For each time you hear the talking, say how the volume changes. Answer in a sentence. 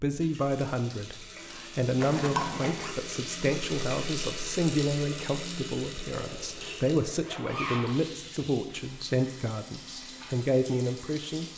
The talking can be heard from 0.0 to 11.4 s, at a steady volume.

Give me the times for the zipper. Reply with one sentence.
The zipper can be heard from 2.0 to 3.0 s and from 6.1 to 8.0 s.